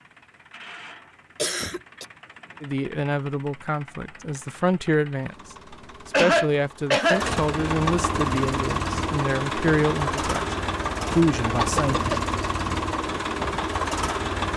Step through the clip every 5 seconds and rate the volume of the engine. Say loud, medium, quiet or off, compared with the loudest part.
quiet, loud, loud.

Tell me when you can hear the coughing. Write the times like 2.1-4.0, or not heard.
1.4-2.0, 6.1-7.2, 11.8-12.2.